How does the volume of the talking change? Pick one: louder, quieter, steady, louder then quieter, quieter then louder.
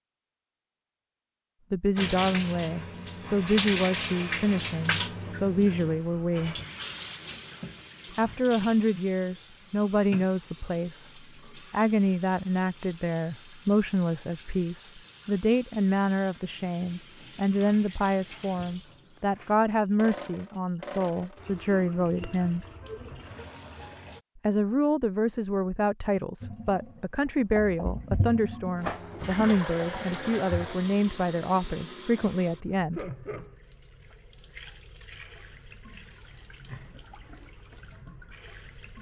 steady.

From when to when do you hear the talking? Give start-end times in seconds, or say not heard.
1.7-6.5, 8.2-22.6, 24.4-33.5.